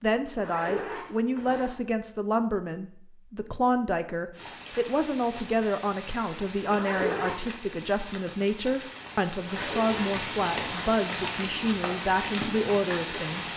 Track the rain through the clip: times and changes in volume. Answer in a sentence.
You can hear the rain from 4.3 to 13.5 s, getting louder.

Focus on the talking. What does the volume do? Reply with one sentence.
The volume of the talking stays about the same.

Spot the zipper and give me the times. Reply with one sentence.
The zipper can be heard from 0.3 to 1.8 s, from 6.7 to 7.5 s and from 9.3 to 11.1 s.